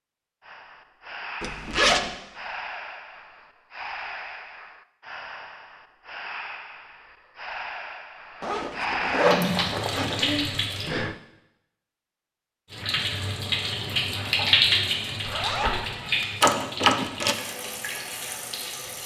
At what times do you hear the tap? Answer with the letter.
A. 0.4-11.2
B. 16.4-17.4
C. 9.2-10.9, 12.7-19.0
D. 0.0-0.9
C.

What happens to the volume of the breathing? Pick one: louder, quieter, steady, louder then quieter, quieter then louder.
louder.